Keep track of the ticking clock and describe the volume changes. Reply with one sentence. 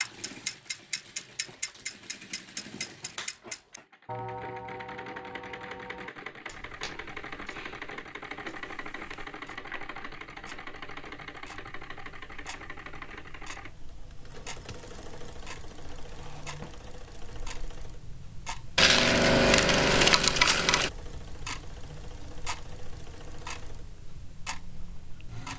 The volume of the ticking clock goes down, then up.